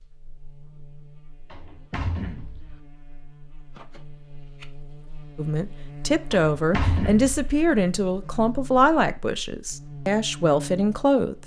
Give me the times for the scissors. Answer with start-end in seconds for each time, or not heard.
3.7-4.7.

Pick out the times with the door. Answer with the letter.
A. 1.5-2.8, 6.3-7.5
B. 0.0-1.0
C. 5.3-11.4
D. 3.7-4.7
A.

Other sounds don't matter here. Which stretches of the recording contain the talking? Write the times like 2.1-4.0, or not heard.
5.3-11.4.